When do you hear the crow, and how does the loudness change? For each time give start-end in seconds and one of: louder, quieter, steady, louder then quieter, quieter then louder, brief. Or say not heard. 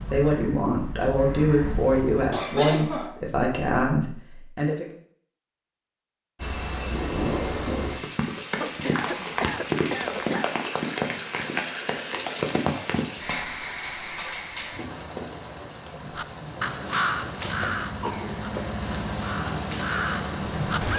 0.0-2.2 brief
16.1-20.9 quieter then louder.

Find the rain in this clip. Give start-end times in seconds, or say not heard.
6.3-20.9.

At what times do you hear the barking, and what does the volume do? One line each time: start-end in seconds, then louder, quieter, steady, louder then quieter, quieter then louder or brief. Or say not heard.
not heard.